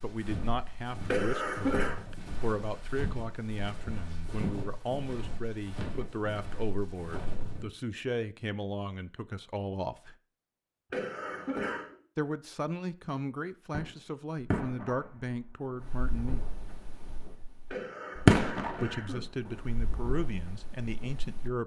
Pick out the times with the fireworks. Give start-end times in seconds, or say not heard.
13.7-21.5.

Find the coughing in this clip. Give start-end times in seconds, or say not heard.
1.1-1.9, 10.9-11.9, 17.7-19.2.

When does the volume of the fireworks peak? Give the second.
18 s.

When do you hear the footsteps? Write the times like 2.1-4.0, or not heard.
0.0-7.7.